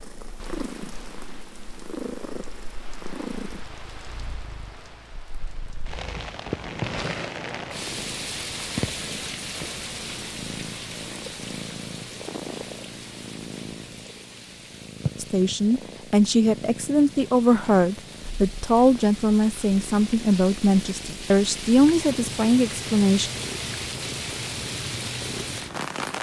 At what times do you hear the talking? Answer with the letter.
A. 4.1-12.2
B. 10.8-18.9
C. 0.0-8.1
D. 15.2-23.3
D.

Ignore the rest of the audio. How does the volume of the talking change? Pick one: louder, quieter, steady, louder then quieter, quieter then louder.
steady.